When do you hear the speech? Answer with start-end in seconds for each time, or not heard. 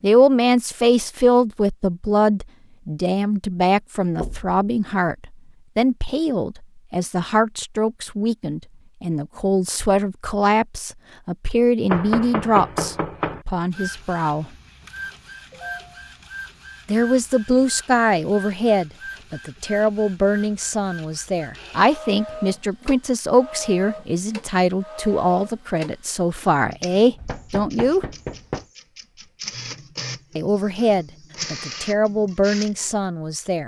0.0-14.5, 16.9-28.1, 30.4-33.6.